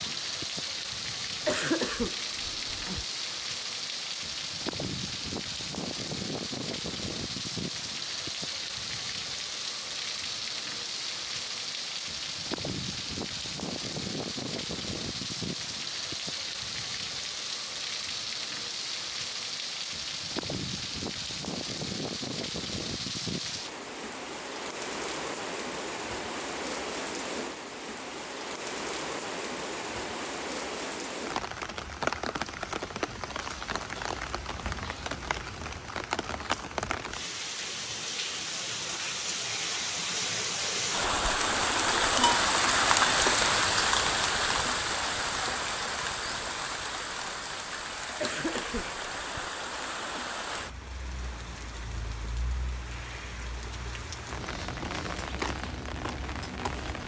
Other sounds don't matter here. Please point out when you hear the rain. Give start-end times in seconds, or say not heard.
0.0-57.0.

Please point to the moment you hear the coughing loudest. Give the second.
2 s.